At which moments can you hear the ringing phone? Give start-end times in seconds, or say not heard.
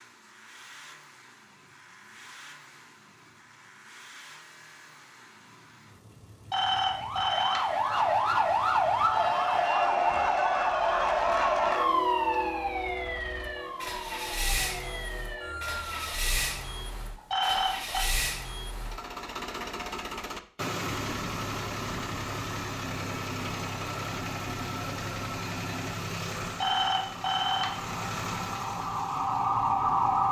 6.5-7.7, 17.3-18.1, 26.6-27.8.